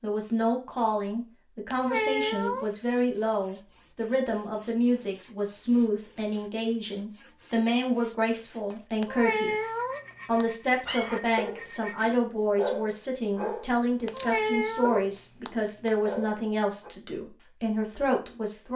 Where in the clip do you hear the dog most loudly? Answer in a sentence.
The loudest moment of the dog is at 13 seconds.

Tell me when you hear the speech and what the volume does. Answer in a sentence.
The speech can be heard from 0.0 to 18.7 s, at a steady volume.